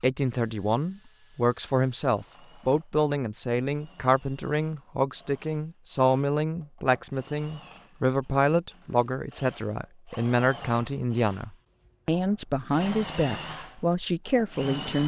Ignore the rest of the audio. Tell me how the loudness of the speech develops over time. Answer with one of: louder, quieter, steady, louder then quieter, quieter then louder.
steady.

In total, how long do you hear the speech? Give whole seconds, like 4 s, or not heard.
15 s.